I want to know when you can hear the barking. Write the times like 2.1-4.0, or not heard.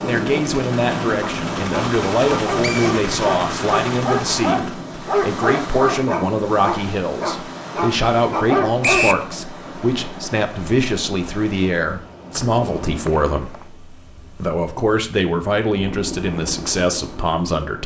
1.2-9.1.